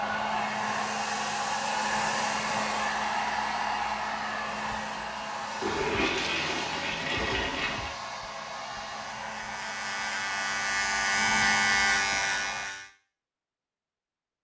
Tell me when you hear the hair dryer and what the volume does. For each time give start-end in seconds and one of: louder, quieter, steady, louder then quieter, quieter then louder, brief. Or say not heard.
0.0-12.7 quieter.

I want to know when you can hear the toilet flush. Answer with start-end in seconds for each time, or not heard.
5.6-8.0.